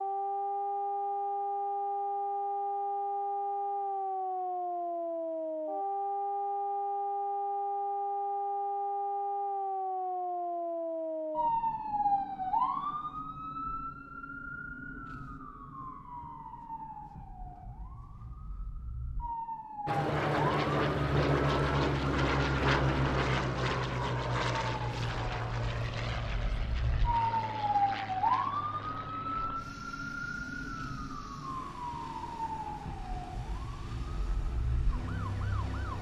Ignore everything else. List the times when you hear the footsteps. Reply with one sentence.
You can't hear the footsteps here.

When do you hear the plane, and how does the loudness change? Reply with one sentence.
The plane can be heard from 19.9 to 35.9 s, getting quieter.